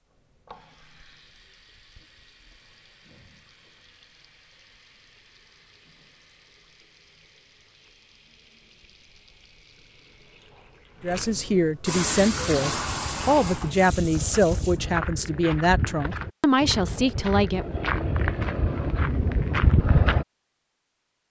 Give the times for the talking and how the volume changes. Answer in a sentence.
The talking can be heard from 11.0 to 17.6 s, at a steady volume.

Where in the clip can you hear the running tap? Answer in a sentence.
You can hear the running tap from 0.0 to 14.8 s.